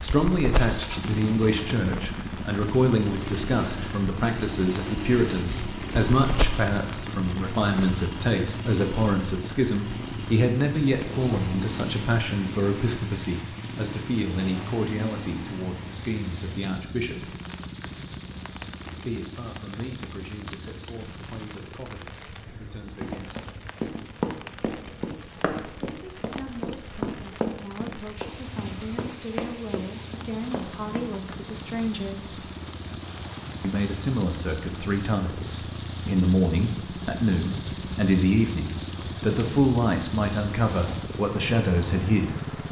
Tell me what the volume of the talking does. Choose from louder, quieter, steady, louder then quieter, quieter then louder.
quieter then louder.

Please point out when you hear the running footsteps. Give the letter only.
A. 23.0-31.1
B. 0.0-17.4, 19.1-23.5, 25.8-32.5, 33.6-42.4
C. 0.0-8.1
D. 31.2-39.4
A.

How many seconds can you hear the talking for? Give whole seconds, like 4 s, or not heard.
37 s.